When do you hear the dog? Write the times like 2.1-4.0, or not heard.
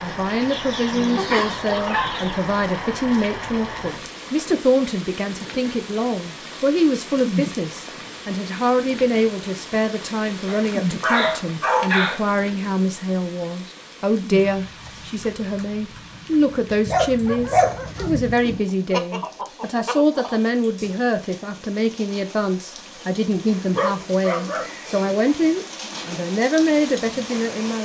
1.1-2.2, 10.4-12.2, 16.7-18.6, 23.8-24.7.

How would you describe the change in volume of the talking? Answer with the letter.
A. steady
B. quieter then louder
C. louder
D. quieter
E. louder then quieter
A.